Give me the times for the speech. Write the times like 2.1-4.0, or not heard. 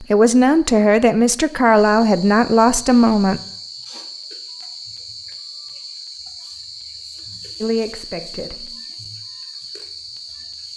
0.0-3.4, 7.6-8.8.